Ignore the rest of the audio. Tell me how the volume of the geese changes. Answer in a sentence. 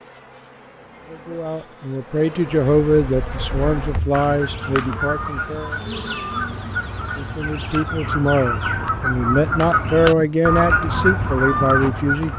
The volume of the geese goes up.